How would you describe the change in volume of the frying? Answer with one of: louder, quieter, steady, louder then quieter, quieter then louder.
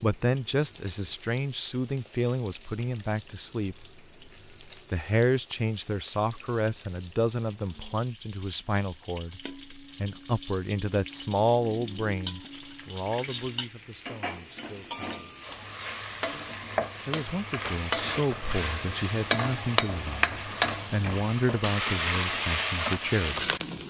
louder.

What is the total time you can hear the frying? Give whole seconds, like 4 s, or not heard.
24 s.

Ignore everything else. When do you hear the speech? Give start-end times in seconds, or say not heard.
0.0-3.9, 4.9-15.2, 17.1-23.4.